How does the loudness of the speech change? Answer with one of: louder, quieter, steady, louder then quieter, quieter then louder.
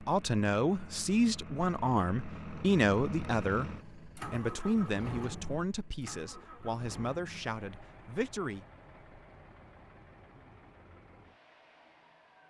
quieter.